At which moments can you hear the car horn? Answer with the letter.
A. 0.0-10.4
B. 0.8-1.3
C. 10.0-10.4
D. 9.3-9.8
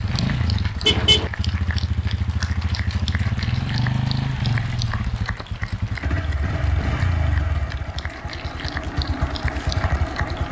B.